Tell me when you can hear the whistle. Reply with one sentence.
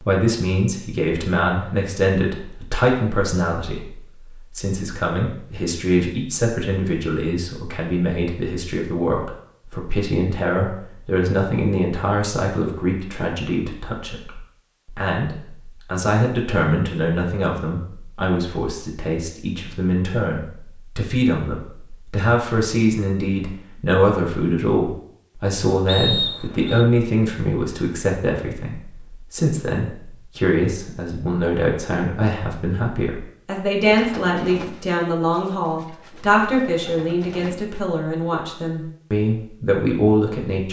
You can hear the whistle from 25.9 to 26.9 s.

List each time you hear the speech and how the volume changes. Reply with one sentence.
The speech can be heard from 0.0 to 40.6 s, at a steady volume.